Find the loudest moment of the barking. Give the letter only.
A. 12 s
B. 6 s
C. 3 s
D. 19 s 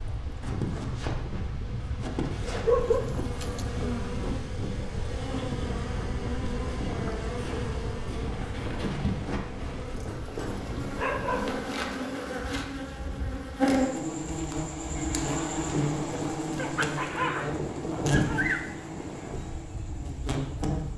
C.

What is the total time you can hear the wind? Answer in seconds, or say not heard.
21 s.